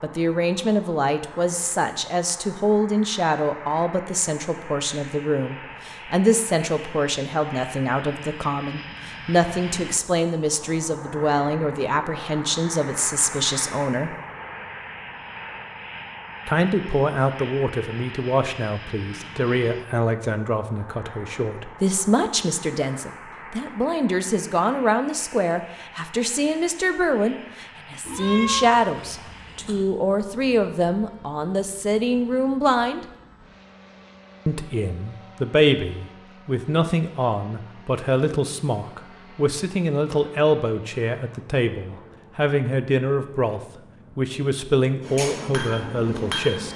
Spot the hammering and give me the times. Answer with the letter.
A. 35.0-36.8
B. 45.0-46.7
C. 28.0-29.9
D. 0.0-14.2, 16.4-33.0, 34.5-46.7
B.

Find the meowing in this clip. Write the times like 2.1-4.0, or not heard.
28.0-29.9.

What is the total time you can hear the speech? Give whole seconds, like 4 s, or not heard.
43 s.